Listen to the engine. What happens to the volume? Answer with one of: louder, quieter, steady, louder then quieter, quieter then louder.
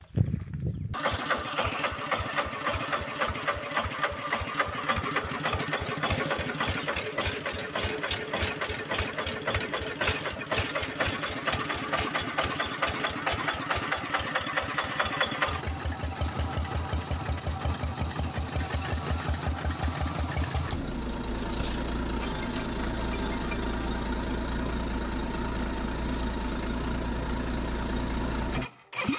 steady.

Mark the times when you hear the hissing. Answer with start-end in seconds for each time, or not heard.
18.6-21.1.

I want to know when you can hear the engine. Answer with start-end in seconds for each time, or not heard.
0.0-29.1.